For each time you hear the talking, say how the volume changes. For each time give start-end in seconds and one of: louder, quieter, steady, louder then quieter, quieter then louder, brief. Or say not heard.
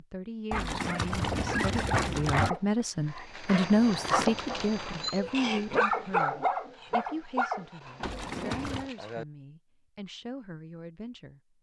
0.0-11.4 louder then quieter.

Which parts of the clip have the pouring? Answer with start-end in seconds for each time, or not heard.
0.5-2.5, 8.0-8.9.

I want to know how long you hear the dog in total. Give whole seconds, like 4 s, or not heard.
9 s.